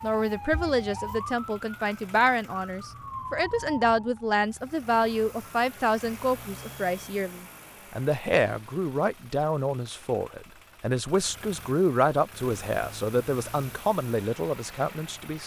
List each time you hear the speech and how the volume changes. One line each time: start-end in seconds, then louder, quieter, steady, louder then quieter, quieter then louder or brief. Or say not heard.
0.0-15.4 steady.